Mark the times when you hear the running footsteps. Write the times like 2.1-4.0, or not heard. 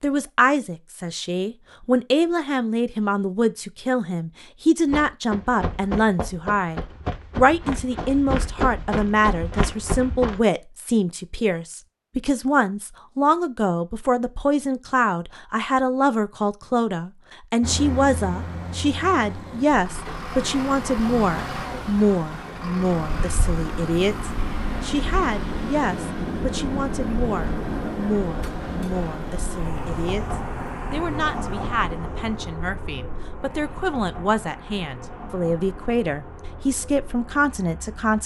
4.9-10.4.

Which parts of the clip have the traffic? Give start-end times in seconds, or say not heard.
17.6-38.2.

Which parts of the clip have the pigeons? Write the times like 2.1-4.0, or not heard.
not heard.